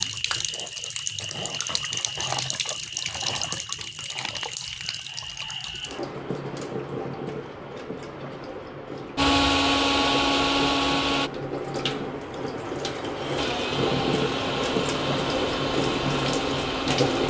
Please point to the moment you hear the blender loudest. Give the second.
10 s.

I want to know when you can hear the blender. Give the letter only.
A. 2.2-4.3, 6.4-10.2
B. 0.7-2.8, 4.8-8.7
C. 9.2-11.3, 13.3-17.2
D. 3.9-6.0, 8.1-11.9
C.